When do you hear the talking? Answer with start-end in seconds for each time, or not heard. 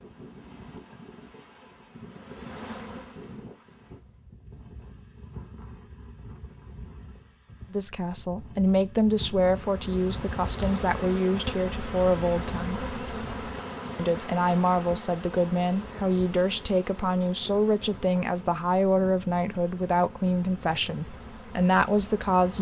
7.7-12.8, 13.9-22.5.